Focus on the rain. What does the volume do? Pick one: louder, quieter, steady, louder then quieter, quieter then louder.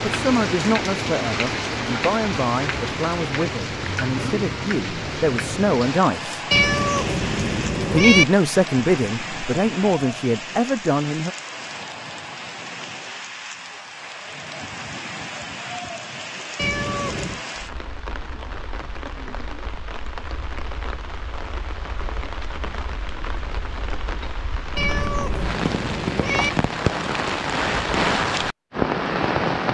quieter then louder.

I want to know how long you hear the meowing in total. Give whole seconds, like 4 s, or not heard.
4 s.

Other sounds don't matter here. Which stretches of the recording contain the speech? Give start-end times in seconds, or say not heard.
0.1-6.4, 7.9-11.3.